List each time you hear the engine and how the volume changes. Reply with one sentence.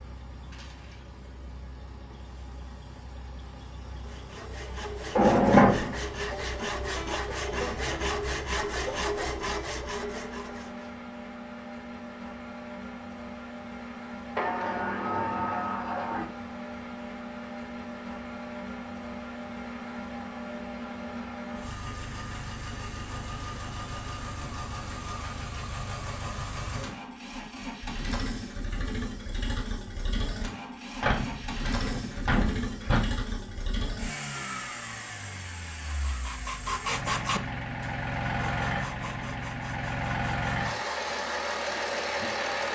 You can hear the engine from 0.0 to 42.6 s, getting louder.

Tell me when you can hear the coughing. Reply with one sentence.
The coughing can't be heard in this clip.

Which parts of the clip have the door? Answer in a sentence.
You can hear the door from 5.2 to 6.0 s, from 14.3 to 16.3 s and from 31.0 to 33.0 s.